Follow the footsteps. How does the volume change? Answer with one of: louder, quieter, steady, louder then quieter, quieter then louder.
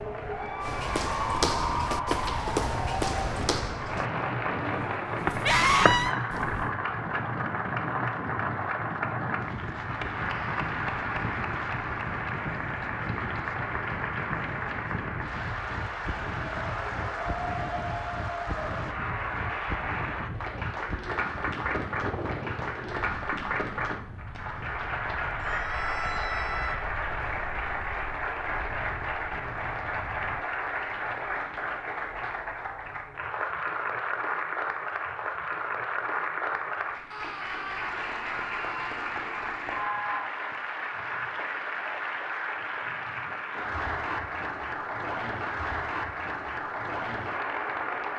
quieter then louder.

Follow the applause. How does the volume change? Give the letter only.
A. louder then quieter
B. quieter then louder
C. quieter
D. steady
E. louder
D.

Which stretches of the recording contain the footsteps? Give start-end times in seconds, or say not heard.
0.6-6.7.